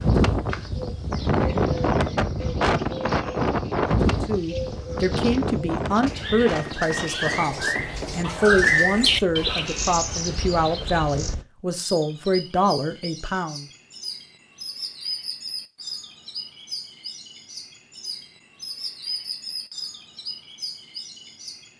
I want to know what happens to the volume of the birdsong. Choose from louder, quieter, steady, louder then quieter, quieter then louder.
louder then quieter.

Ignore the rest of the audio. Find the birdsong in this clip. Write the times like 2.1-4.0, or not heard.
0.0-21.7.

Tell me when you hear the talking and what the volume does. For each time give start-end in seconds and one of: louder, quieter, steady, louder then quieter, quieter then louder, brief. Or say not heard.
4.2-13.7 steady.